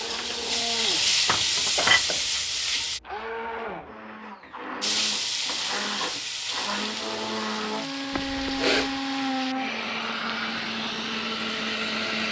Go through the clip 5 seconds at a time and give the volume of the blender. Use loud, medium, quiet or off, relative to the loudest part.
medium, loud, loud.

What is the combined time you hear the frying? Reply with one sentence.
The frying can be heard for 10 seconds in total.